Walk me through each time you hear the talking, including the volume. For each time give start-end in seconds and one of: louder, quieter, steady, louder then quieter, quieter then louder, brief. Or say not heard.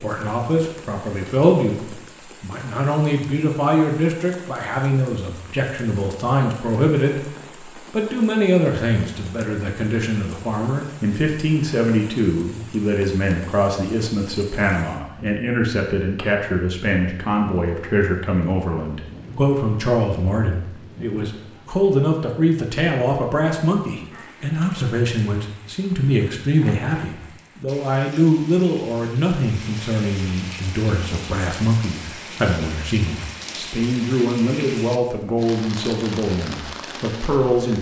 0.0-37.7 steady.